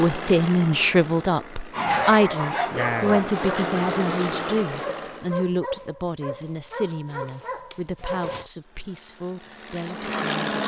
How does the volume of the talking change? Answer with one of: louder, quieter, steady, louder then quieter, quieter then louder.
quieter.